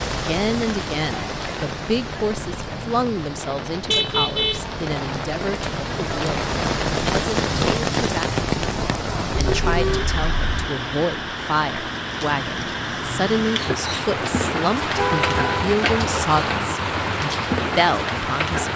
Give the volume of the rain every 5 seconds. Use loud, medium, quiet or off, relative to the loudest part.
medium, loud, loud, loud.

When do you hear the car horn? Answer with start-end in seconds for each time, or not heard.
3.9-4.7, 9.3-10.7, 14.9-15.8.